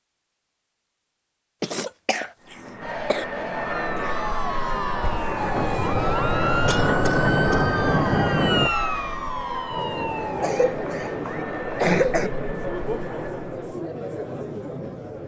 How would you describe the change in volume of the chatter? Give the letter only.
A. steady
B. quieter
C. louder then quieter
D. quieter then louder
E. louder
A.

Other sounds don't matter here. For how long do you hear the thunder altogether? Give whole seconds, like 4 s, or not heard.
4 s.